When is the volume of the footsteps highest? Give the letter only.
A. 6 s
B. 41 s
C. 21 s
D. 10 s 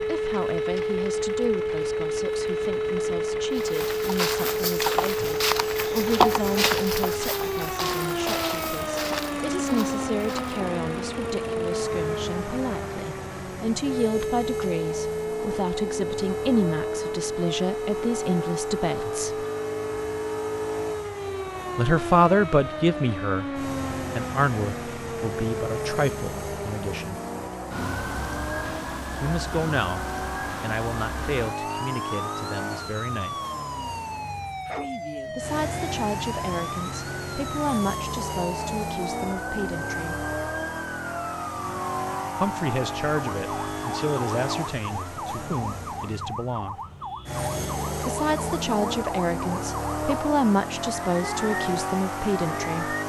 A.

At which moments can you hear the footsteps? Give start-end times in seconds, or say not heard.
3.5-10.6.